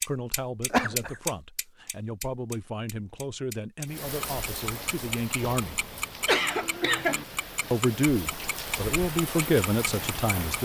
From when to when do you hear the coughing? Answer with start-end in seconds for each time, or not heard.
0.7-1.1, 6.2-7.2.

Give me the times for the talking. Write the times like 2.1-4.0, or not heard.
0.0-5.8, 7.7-10.5.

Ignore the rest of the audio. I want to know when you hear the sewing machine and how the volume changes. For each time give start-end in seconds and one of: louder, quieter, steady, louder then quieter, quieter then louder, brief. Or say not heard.
not heard.